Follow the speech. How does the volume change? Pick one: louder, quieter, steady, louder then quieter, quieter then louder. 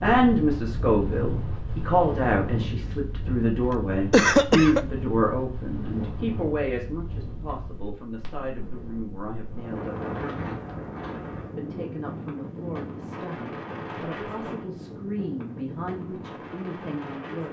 quieter.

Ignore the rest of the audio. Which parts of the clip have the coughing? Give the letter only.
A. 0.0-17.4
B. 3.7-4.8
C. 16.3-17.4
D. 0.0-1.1
B.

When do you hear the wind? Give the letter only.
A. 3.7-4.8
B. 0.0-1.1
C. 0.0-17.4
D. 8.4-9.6
C.